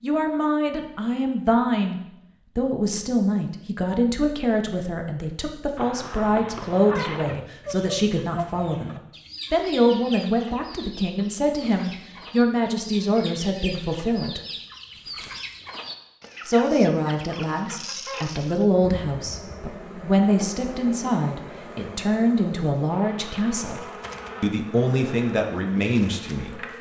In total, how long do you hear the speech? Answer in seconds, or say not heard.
24 s.